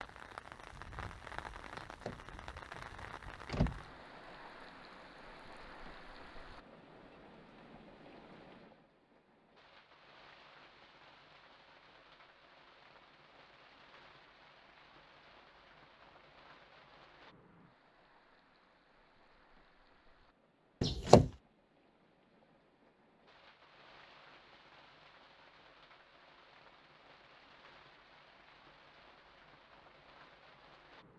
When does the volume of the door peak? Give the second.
21 s.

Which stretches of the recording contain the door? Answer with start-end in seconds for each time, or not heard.
1.8-3.9, 20.8-21.3.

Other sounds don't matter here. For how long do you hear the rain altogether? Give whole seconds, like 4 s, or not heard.
31 s.